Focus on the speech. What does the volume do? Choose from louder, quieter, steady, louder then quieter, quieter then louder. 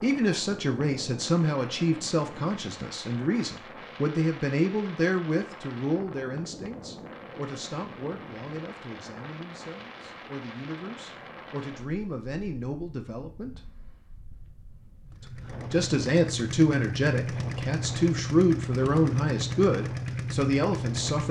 quieter then louder.